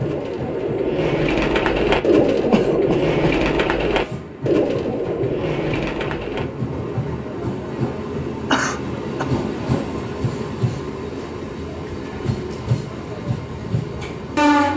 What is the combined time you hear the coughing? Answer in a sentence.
You can hear the coughing for 2 seconds altogether.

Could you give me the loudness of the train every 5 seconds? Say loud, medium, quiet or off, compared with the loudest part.
medium, loud, loud.